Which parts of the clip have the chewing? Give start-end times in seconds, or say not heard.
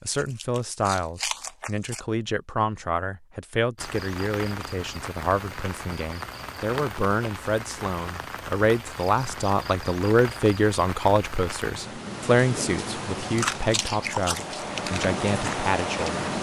0.1-2.0, 13.2-16.1.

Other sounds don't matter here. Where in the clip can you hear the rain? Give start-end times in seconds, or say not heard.
3.8-16.3.